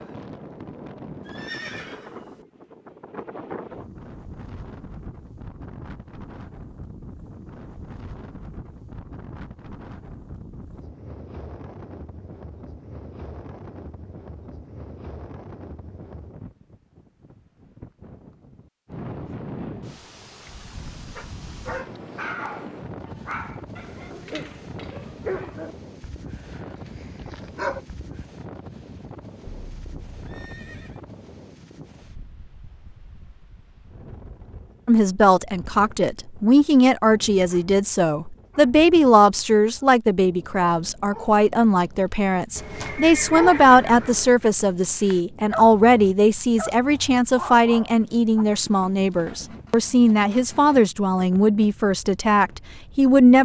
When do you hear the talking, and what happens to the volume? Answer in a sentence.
You can hear the talking from 34.9 to 53.3 s, at a steady volume.